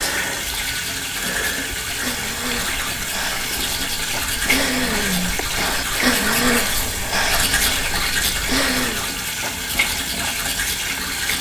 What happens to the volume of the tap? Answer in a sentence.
The loudness of the tap stays about the same.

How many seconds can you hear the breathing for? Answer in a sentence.
You can hear the breathing for 9 seconds altogether.